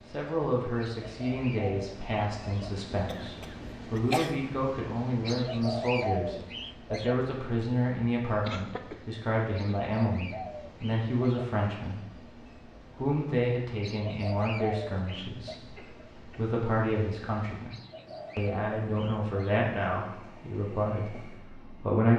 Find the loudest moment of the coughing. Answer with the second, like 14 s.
4 s.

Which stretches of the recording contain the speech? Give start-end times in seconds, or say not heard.
0.1-12.1, 12.9-17.8, 18.4-22.1.